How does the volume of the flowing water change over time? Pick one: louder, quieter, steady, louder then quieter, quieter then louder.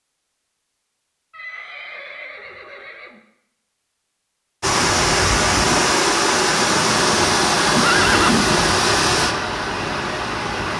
quieter.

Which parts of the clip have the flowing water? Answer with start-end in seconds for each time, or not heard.
4.6-10.7.